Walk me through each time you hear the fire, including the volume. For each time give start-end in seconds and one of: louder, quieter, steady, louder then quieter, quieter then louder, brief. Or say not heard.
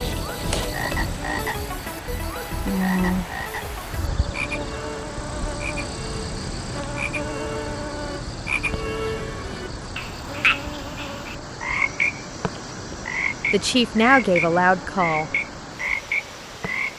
not heard.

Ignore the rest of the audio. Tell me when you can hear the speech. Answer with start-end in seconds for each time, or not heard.
13.5-15.3.